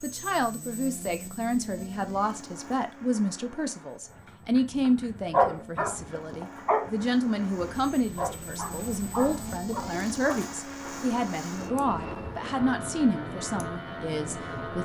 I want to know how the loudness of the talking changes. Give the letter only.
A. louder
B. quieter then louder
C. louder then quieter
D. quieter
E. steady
E.